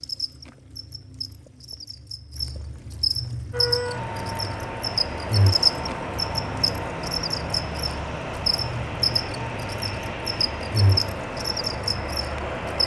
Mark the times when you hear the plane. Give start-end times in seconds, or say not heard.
3.5-12.8.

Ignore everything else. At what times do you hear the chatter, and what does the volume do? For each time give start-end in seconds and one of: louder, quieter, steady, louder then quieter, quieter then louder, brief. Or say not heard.
not heard.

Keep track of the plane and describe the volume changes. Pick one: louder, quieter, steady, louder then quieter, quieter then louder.
steady.